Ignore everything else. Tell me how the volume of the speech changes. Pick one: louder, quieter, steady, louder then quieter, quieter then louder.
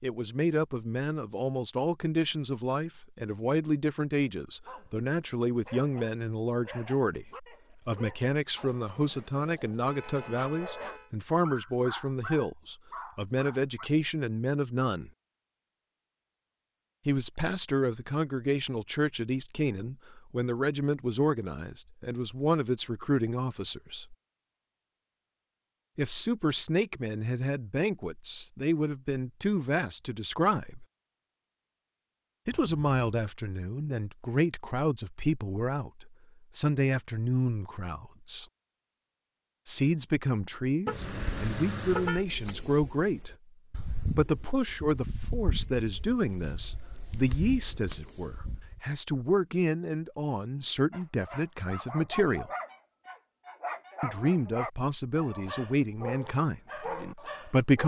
steady.